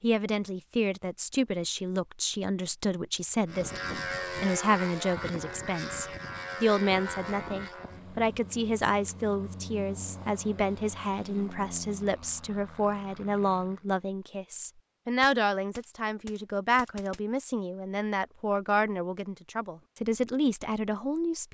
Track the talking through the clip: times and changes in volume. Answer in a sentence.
The talking can be heard from 0.0 to 21.5 s, at a steady volume.